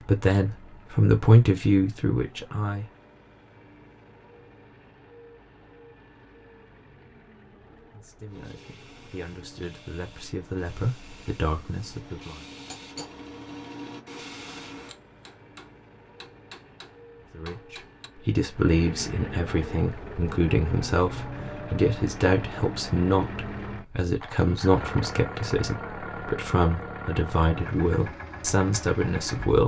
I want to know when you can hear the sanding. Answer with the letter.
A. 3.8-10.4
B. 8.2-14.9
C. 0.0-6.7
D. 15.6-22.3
B.